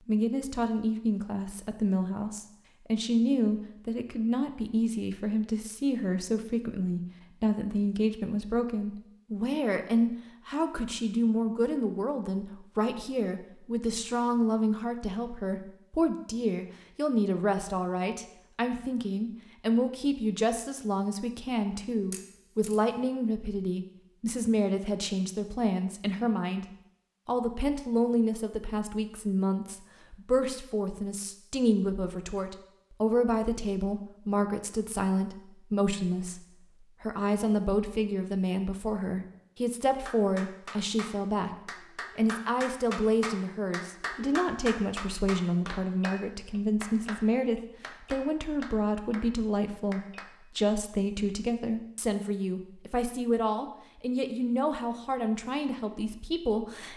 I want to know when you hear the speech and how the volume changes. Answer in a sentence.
You can hear the speech from 0.1 to 26.6 s, at a steady volume; and from 27.2 to 56.9 s, at a steady volume.